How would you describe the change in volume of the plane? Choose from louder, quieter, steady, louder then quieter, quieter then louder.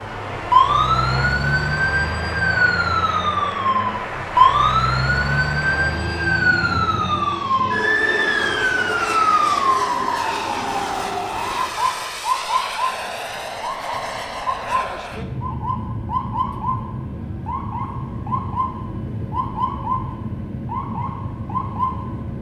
steady.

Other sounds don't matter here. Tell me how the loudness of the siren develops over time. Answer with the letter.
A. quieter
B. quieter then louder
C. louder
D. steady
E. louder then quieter
A.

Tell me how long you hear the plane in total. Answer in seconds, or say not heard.
22 s.